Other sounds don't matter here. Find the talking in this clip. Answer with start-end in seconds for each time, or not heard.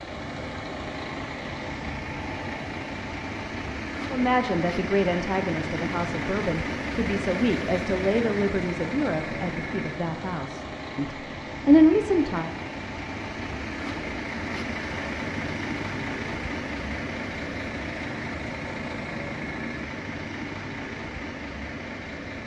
4.1-12.6.